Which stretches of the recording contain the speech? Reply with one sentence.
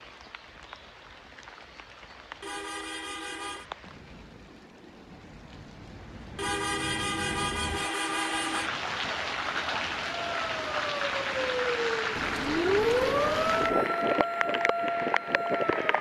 You can't hear the speech here.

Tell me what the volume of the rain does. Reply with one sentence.
The loudness of the rain goes up.